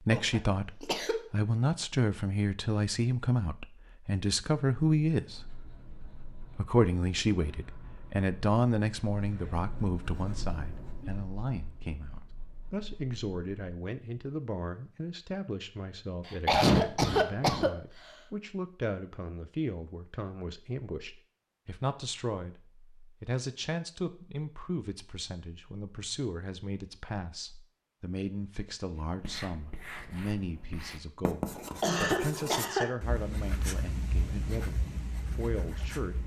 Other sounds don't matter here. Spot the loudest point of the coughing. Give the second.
17 s.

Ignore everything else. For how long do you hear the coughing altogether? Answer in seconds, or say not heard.
4 s.